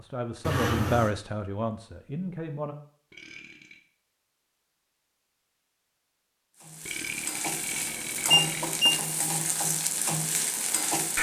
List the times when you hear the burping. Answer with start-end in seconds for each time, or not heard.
3.1-3.8, 6.8-8.8.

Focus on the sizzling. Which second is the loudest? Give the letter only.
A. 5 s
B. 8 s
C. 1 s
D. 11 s
D.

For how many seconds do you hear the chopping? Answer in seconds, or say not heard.
not heard.